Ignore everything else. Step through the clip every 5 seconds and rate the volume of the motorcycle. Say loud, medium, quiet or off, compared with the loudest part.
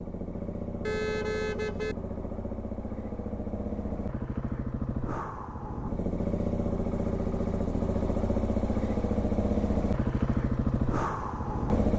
medium, loud, loud.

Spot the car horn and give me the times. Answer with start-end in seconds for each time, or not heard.
0.8-1.9.